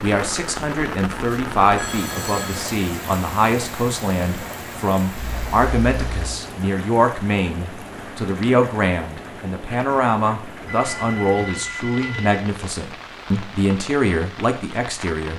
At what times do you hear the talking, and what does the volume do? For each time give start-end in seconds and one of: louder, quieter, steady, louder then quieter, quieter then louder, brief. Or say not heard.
0.0-15.3 steady.